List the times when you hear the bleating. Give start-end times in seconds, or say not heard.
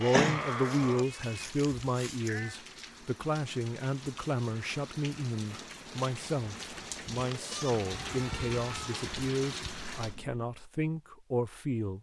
0.0-2.5, 6.5-10.6.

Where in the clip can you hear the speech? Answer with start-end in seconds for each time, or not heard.
0.0-11.9.